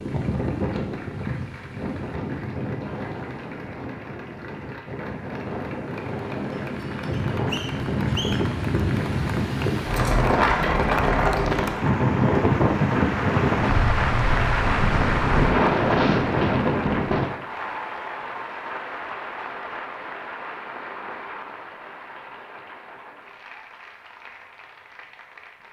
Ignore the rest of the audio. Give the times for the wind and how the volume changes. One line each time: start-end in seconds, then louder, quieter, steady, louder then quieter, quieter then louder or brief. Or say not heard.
0.0-17.3 louder.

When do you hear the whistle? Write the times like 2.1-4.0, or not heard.
7.1-8.6.